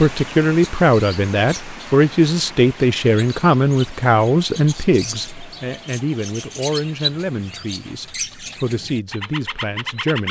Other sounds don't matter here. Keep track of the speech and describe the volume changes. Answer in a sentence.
The volume of the speech goes down.